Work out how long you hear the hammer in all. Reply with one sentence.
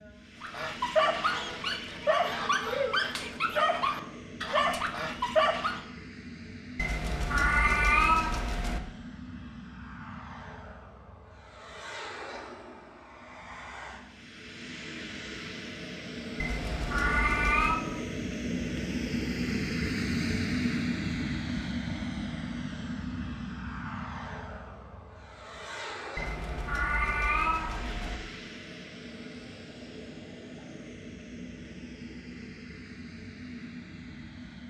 The hammer can't be heard in this clip.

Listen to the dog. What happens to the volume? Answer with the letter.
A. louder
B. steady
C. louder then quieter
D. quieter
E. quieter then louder
B.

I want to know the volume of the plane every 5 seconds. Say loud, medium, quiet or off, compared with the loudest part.
medium, medium, medium, loud, loud, medium, medium.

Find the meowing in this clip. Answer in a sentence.
The meowing can be heard from 6.8 to 8.8 s, from 16.4 to 17.8 s and from 26.1 to 28.2 s.